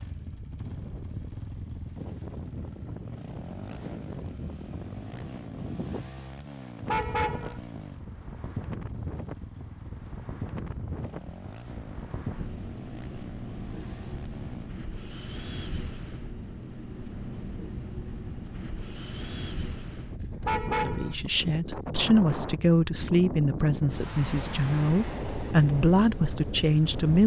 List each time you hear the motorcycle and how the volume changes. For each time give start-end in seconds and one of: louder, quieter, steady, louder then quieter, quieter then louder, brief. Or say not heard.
0.0-14.8 steady.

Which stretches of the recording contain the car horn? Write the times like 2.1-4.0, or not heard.
6.8-7.6, 20.4-21.1.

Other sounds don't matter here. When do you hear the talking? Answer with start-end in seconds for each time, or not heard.
20.7-27.2.